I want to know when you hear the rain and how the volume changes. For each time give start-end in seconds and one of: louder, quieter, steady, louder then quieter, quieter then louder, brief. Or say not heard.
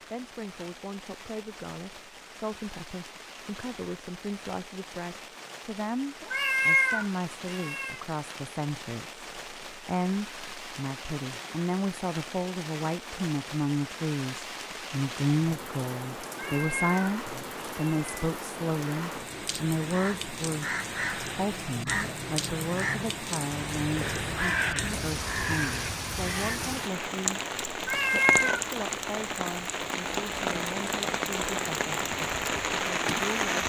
0.0-33.6 louder.